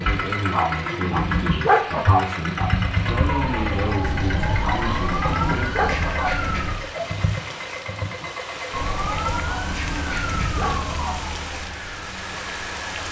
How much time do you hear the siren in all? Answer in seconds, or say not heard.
8 s.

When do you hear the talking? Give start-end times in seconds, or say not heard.
0.0-5.7.